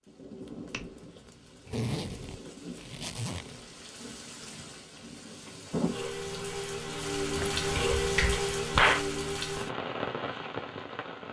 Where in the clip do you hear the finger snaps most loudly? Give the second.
9 s.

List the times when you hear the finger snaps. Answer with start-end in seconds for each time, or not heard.
0.5-1.4, 7.8-9.1.